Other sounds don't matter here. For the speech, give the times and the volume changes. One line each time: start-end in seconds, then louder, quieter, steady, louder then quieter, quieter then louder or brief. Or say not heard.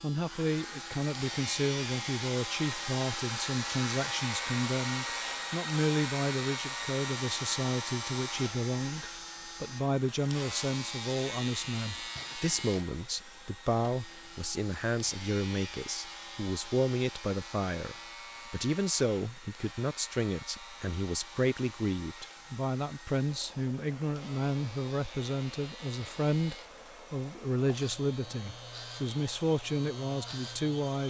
0.0-31.0 steady.